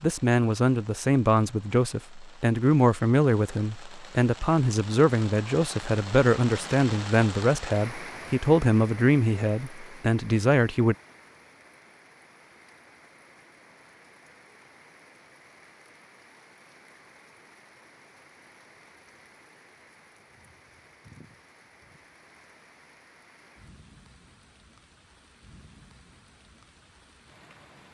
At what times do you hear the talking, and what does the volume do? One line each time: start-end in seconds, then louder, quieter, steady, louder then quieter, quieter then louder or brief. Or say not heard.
0.0-10.9 steady.